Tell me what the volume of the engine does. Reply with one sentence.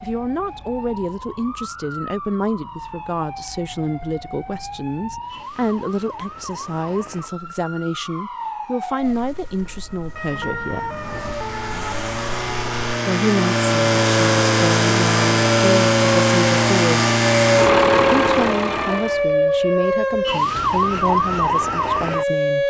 The volume of the engine goes up.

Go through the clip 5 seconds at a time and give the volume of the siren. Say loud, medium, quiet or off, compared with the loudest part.
quiet, quiet, medium, loud, loud.